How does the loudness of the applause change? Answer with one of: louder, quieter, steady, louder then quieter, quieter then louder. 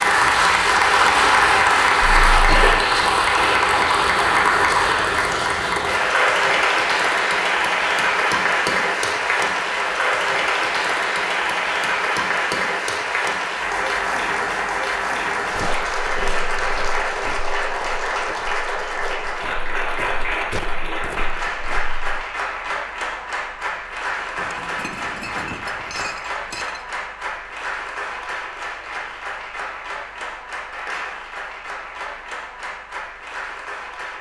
quieter.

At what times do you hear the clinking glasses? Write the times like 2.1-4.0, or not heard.
24.4-26.9.